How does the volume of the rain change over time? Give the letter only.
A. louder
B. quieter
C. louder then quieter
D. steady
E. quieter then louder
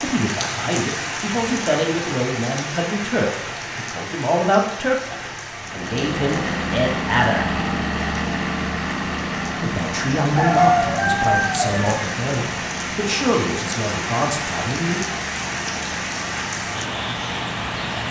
E.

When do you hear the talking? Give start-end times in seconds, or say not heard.
0.0-7.5, 9.6-15.0.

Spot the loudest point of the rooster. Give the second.
11 s.